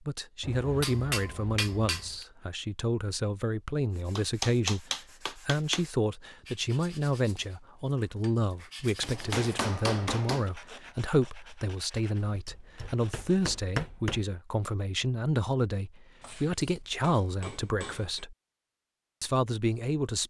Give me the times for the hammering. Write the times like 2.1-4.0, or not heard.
0.4-2.2, 4.2-5.8, 9.0-10.5, 12.2-14.2, 16.2-18.2.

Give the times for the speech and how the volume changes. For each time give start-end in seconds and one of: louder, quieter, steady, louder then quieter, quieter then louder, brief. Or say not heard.
0.1-18.4 steady
19.2-20.2 brief.